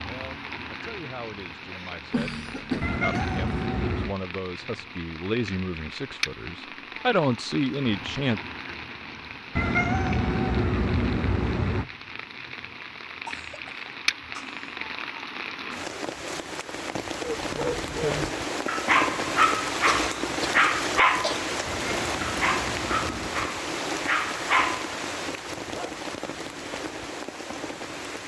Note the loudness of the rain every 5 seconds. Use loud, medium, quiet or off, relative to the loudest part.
medium, medium, medium, loud, loud, medium.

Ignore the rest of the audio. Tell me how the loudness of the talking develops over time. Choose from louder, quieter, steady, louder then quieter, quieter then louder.
louder.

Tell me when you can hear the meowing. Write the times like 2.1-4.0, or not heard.
2.8-4.2, 9.6-11.8, 21.6-23.6.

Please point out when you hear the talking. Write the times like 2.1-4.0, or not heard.
0.0-8.4.